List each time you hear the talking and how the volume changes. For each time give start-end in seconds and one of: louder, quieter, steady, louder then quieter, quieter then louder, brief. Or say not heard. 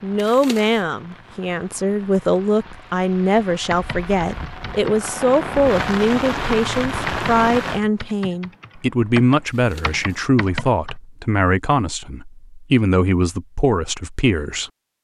0.0-14.7 steady.